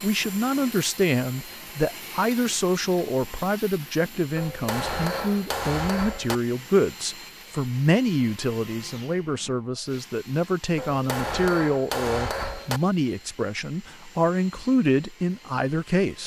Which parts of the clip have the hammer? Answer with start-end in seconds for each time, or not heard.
4.3-6.3, 10.8-12.8.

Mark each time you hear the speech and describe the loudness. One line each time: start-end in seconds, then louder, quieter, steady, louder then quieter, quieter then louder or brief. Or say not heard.
0.0-16.2 steady.